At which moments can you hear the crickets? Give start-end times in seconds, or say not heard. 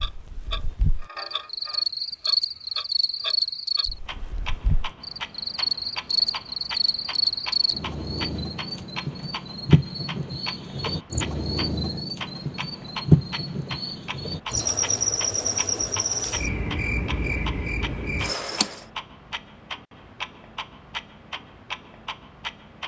0.0-18.8.